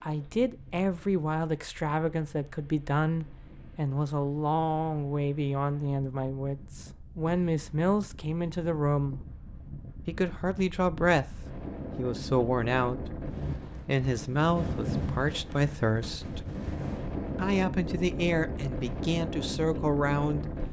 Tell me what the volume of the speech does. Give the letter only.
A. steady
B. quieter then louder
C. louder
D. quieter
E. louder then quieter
A.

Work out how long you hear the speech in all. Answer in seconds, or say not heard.
19 s.